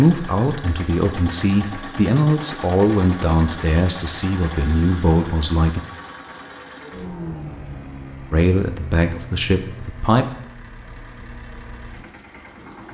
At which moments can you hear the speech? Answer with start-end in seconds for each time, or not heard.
0.0-5.8, 8.3-10.2.